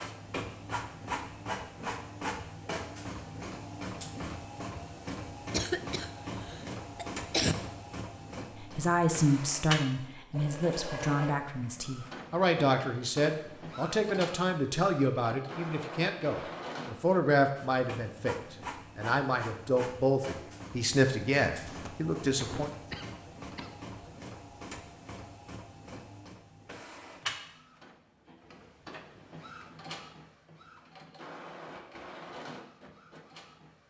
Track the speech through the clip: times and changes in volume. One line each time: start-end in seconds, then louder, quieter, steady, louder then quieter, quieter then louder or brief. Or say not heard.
8.6-22.7 steady.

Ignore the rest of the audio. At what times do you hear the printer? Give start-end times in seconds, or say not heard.
0.0-33.8.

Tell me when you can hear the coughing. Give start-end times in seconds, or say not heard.
5.5-7.5, 21.4-23.8.